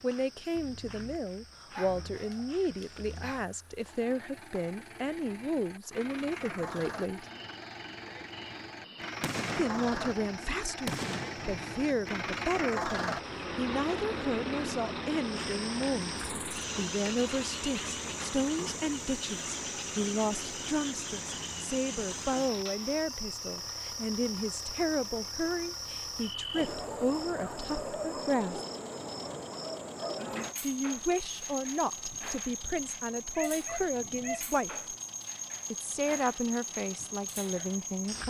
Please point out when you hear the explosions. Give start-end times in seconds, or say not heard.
9.2-12.2.